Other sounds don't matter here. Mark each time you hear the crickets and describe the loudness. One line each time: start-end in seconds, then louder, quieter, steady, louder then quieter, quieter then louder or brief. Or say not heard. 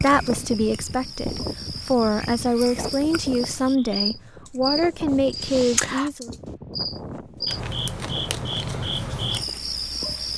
0.0-10.3 louder.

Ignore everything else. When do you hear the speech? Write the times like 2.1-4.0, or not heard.
0.0-6.3.